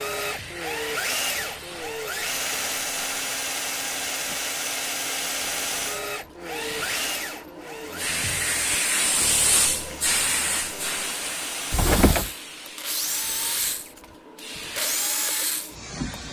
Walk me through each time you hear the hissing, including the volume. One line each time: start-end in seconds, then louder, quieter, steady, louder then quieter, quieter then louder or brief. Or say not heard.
0.0-16.2 louder then quieter.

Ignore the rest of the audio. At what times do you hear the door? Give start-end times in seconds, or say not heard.
11.7-12.3.